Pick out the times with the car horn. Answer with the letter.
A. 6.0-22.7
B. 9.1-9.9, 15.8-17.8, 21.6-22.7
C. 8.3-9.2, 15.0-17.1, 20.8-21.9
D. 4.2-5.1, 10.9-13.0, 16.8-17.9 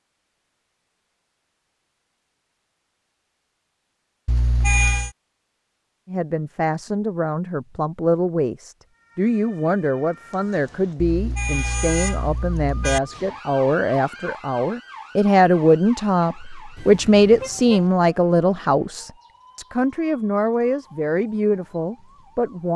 D.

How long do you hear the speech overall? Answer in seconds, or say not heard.
17 s.